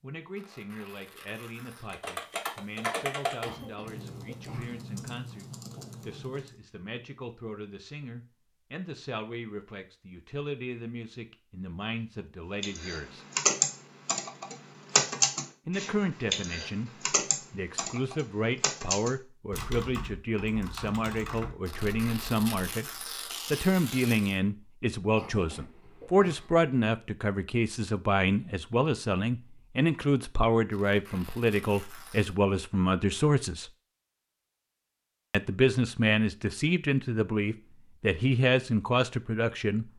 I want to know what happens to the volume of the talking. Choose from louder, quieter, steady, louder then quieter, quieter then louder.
louder.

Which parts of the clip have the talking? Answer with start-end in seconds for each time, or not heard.
0.0-13.2, 15.7-33.7, 35.3-39.9.